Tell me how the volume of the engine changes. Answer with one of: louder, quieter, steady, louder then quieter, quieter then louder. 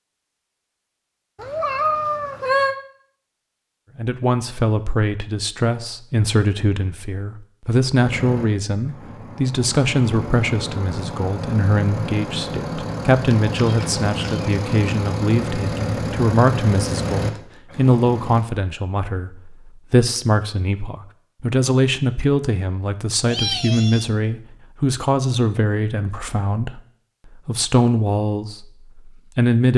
louder.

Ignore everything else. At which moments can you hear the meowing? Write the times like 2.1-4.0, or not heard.
1.4-2.8, 13.2-14.5, 23.2-24.1.